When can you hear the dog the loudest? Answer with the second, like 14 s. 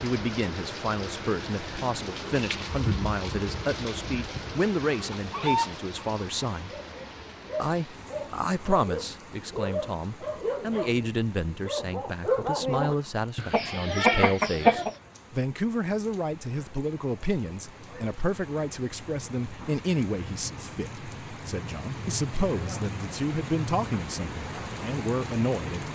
12 s.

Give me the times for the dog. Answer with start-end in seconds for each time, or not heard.
6.7-12.9.